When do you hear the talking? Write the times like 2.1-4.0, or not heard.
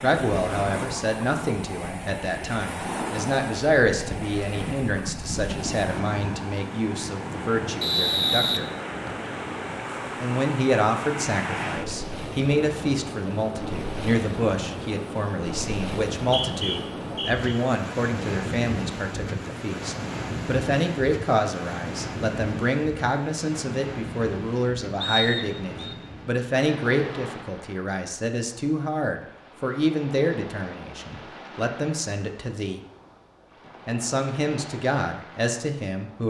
0.0-8.7, 10.2-32.8, 33.9-36.2.